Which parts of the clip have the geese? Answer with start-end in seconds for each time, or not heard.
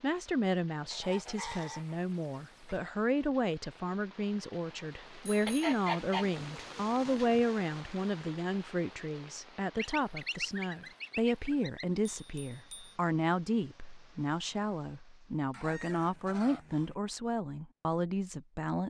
0.9-2.8, 5.5-7.3, 9.8-11.8, 15.5-16.9.